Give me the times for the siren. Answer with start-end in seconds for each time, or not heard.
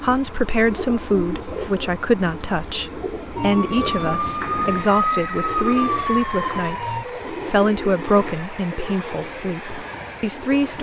3.4-7.0.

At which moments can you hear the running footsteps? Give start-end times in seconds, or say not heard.
not heard.